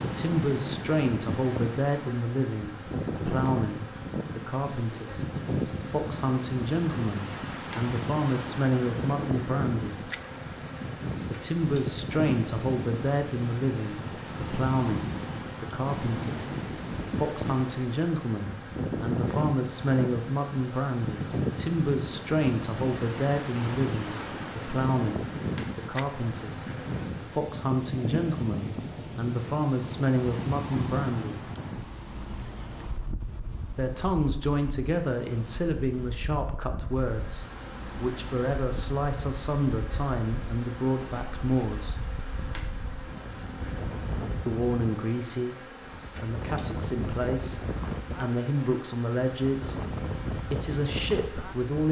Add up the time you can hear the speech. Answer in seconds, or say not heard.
46 s.